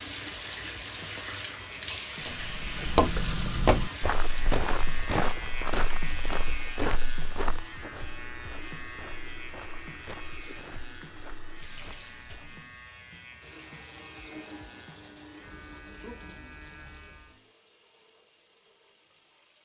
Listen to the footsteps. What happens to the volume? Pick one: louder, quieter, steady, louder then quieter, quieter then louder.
quieter.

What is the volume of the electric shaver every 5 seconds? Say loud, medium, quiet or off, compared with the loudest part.
loud, loud, medium, medium.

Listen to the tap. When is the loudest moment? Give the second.
2 s.